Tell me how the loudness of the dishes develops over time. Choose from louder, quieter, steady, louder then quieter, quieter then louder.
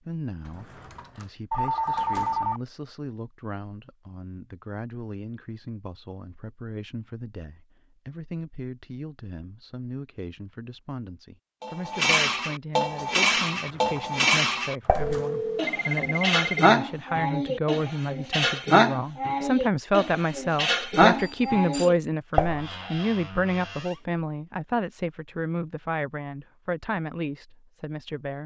steady.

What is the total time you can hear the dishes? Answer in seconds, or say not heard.
11 s.